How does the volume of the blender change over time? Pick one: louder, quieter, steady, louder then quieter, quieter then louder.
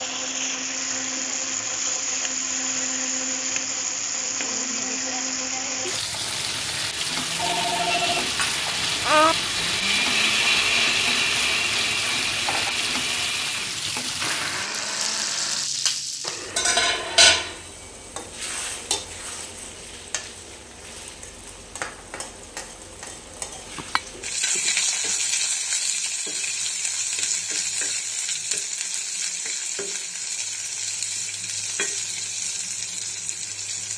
louder then quieter.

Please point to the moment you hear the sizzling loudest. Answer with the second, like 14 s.
17 s.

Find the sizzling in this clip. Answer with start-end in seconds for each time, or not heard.
0.0-33.9.